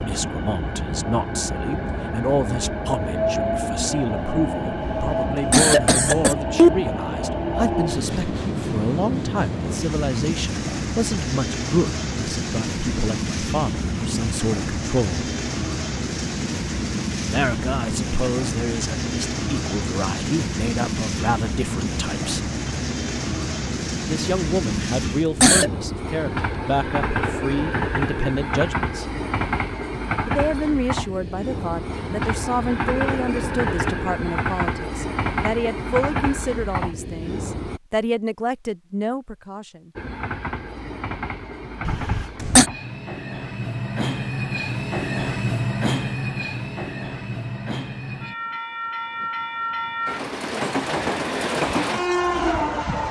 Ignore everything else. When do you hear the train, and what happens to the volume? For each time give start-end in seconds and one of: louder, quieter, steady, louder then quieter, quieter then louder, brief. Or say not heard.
0.0-37.8 steady
40.0-53.0 louder.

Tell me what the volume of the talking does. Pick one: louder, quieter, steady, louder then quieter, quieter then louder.
steady.